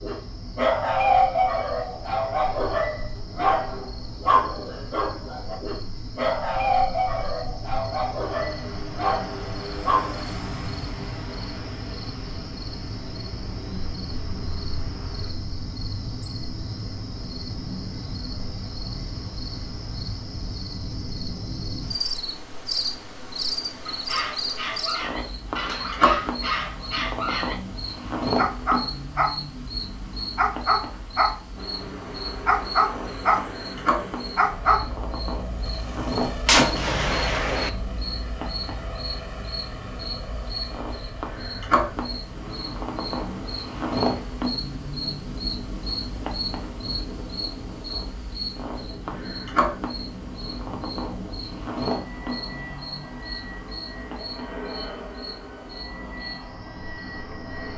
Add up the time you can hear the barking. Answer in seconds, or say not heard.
21 s.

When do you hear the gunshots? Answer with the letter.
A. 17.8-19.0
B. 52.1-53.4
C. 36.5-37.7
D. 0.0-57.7
C.